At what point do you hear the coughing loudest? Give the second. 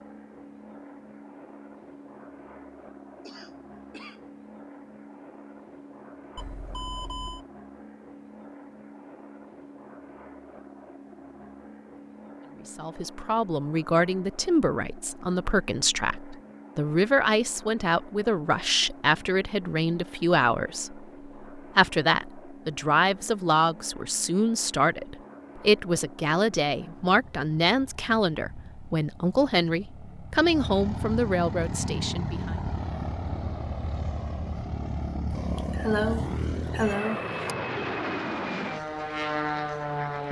36 s.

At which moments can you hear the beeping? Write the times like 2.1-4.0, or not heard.
6.3-7.5.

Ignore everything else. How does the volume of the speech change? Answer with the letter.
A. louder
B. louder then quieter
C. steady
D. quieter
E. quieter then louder
C.